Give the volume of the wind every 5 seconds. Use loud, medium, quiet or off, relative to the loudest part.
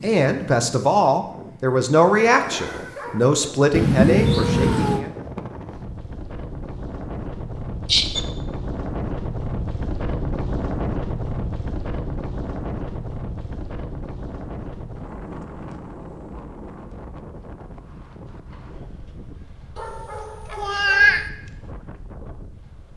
medium, loud, loud, medium, quiet.